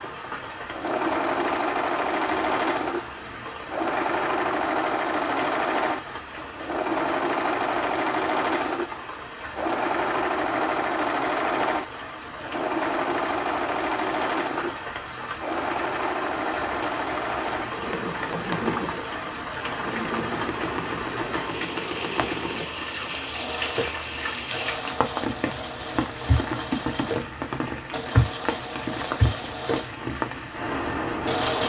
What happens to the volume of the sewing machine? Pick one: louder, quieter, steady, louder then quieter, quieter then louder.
quieter.